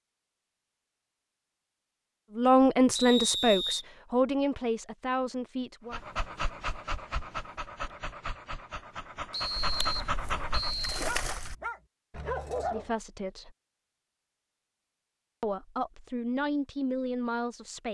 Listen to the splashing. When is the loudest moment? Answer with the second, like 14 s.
11 s.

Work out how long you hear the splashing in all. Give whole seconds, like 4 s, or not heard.
2 s.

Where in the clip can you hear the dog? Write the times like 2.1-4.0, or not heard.
5.9-12.9.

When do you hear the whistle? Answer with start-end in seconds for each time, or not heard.
3.0-3.9, 9.3-11.1.